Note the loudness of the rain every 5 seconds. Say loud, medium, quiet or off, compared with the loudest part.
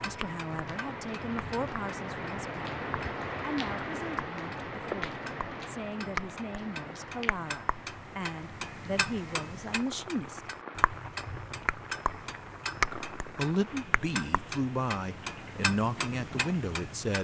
loud, medium, medium, medium.